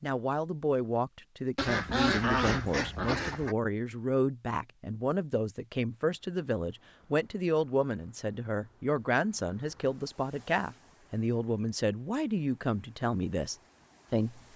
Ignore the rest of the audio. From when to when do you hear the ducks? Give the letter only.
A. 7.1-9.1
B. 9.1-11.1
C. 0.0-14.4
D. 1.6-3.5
D.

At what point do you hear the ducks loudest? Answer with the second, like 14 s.
2 s.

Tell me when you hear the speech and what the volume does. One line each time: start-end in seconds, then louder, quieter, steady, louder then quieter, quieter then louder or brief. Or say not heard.
0.0-14.4 steady.